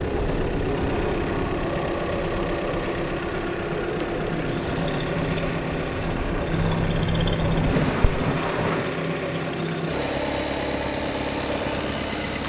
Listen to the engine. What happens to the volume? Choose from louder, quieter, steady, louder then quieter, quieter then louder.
steady.